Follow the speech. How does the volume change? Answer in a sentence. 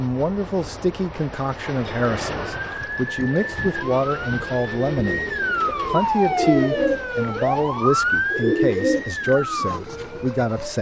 The loudness of the speech stays about the same.